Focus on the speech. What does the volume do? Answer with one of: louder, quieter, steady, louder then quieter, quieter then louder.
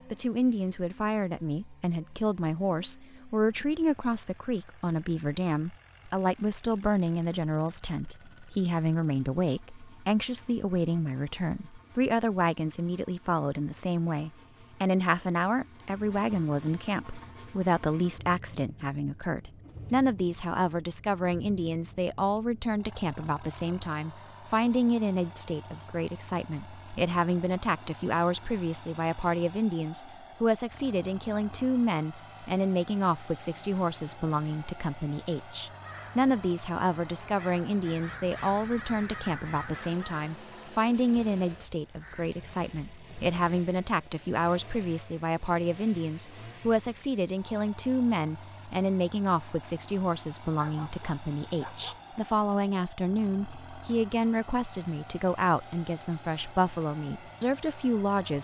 steady.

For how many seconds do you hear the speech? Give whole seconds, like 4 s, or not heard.
58 s.